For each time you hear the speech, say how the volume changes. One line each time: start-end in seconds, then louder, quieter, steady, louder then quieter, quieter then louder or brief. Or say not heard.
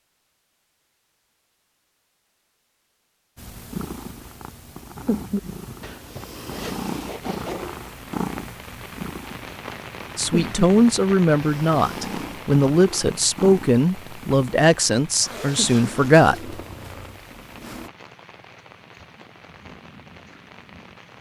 10.2-16.6 steady.